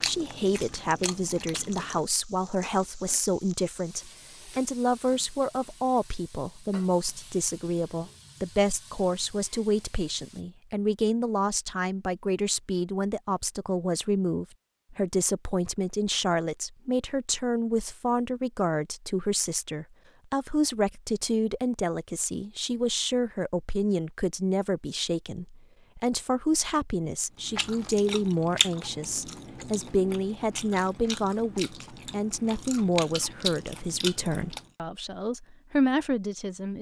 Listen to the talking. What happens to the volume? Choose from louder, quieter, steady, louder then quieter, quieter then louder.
steady.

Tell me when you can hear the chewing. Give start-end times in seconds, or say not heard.
0.0-2.0, 27.4-34.6.